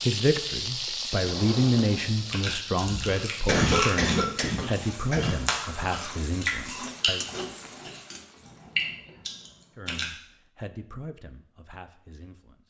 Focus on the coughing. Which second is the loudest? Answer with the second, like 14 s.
4 s.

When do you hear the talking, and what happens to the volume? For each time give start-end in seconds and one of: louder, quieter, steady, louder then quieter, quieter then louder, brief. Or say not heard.
0.0-7.2 quieter
9.8-12.6 brief.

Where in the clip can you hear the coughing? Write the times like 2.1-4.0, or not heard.
2.8-5.3.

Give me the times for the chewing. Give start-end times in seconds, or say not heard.
2.3-10.1.